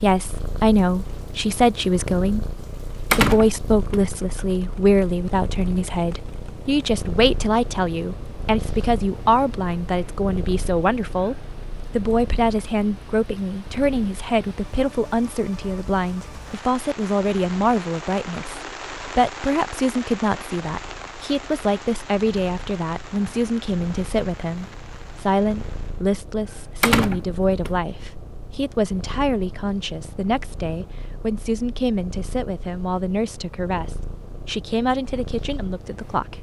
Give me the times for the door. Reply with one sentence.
You can hear the door from 3.1 to 4.0 s and from 26.8 to 27.7 s.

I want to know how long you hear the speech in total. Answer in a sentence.
You can hear the speech for 36 seconds altogether.